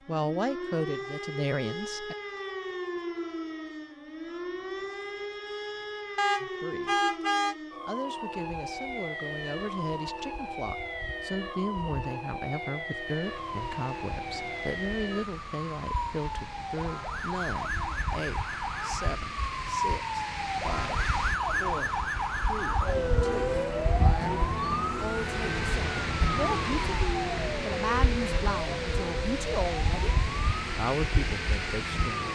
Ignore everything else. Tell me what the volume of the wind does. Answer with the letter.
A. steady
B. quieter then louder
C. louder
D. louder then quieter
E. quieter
C.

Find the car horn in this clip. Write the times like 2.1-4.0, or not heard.
6.2-7.5.